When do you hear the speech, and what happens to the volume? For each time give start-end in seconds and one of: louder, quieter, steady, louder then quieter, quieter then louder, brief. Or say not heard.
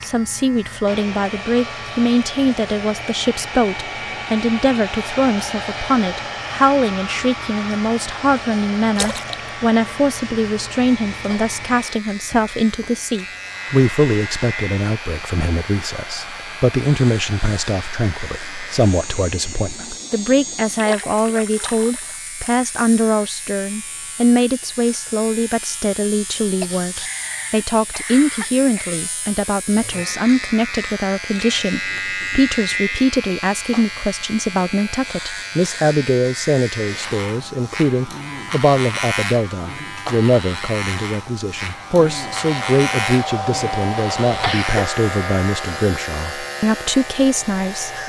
0.0-48.0 steady.